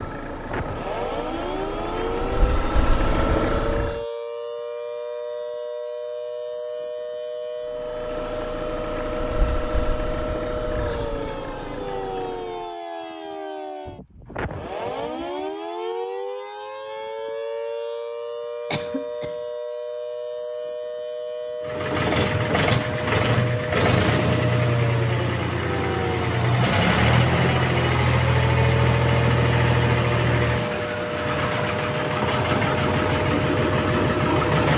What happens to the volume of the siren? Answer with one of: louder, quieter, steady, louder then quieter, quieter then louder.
steady.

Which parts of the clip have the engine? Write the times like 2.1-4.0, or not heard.
0.0-4.0, 7.7-12.8, 21.6-34.7.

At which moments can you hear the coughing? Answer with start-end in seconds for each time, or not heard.
18.7-19.4.